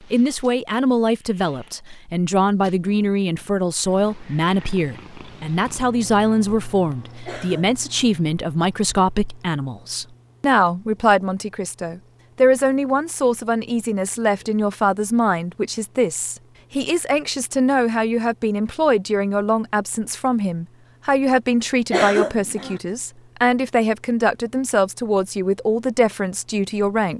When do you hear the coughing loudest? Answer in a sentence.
The loudest moment of the coughing is at 22 seconds.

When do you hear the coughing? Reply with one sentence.
You can hear the coughing from 7.2 to 8.1 s and from 21.9 to 22.8 s.